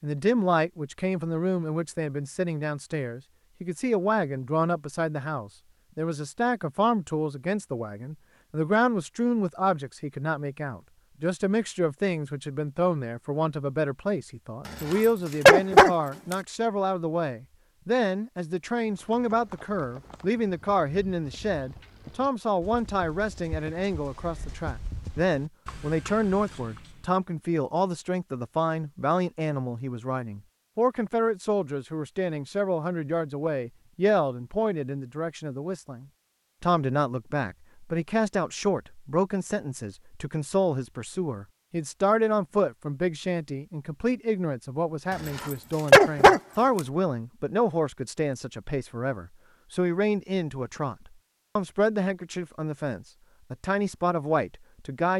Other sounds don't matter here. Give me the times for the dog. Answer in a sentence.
The dog can be heard from 14.9 to 16.4 s and from 45.4 to 46.4 s.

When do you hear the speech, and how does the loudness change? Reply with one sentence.
You can hear the speech from 0.0 to 55.1 s, at a steady volume.